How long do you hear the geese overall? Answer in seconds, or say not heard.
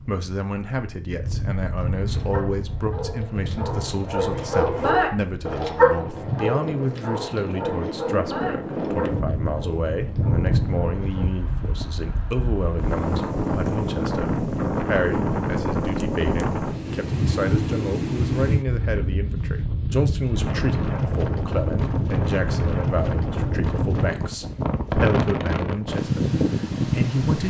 not heard.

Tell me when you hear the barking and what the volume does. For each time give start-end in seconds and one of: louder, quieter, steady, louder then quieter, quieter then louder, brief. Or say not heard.
2.1-11.3 louder then quieter.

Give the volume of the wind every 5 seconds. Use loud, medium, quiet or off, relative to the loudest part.
medium, medium, loud, loud, loud, loud.